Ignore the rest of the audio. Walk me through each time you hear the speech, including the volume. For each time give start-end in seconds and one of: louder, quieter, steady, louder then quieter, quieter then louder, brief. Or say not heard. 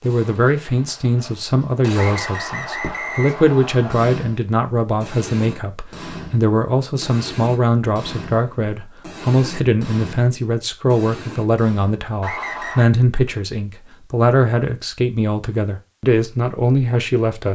0.0-17.4 steady.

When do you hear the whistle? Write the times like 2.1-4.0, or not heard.
1.9-4.0, 12.2-12.8.